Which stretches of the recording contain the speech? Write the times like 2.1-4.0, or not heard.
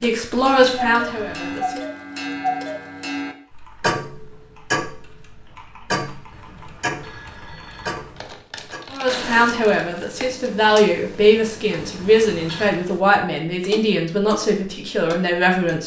0.0-1.8, 8.9-15.8.